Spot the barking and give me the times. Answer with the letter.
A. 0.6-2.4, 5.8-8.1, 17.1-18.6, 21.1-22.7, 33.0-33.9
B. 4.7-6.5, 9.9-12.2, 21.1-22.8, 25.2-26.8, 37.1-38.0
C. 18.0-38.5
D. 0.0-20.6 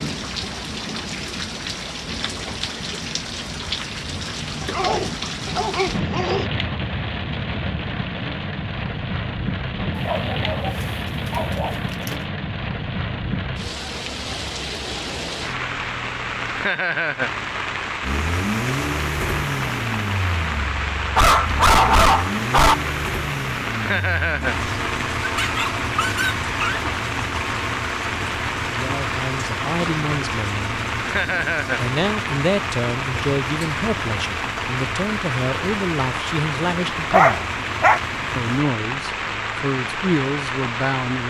B.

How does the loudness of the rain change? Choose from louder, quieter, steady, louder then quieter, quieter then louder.
steady.